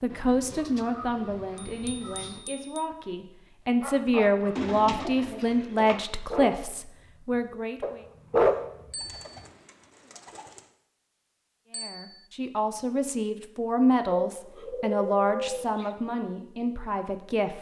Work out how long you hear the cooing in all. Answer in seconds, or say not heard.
7 s.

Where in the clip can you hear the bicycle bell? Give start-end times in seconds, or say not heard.
1.6-2.9, 8.9-9.4, 11.7-12.2.